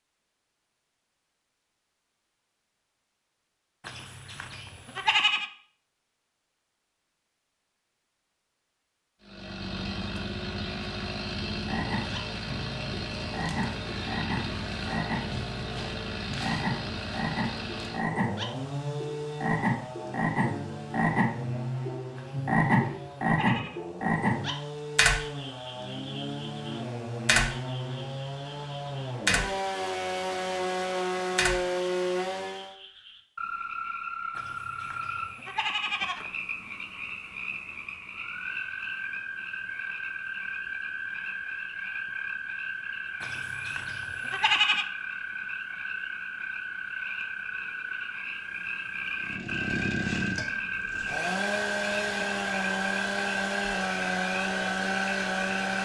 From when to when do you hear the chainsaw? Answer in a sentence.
The chainsaw can be heard from 9.2 to 32.8 s and from 49.2 to 55.8 s.